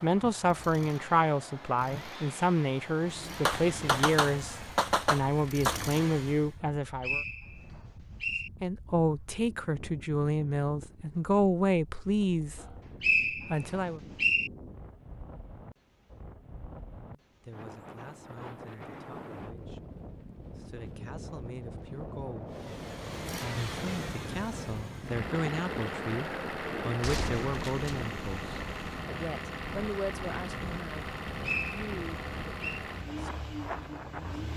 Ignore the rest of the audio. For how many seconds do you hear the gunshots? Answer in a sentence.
You can hear the gunshots for 3 seconds altogether.